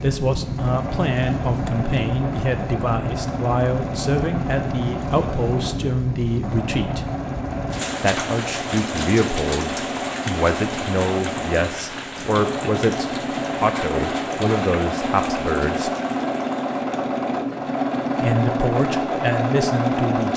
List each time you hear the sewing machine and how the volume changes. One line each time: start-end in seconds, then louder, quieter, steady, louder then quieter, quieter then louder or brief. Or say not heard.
0.0-20.3 louder.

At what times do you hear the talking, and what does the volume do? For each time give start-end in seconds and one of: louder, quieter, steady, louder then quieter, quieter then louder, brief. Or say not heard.
0.0-7.0 steady
8.0-15.9 steady
18.2-20.3 brief.